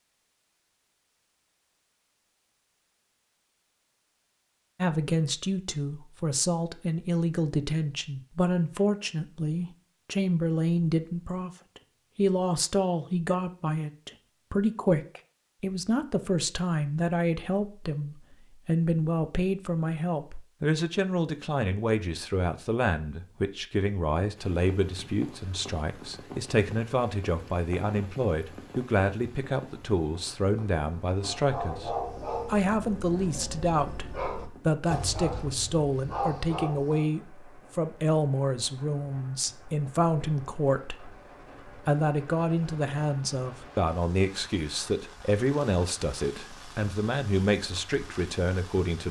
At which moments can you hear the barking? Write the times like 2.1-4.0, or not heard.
31.2-37.1.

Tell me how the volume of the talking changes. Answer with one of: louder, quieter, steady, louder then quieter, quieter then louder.
steady.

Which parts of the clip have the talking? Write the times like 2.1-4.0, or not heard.
4.8-49.0.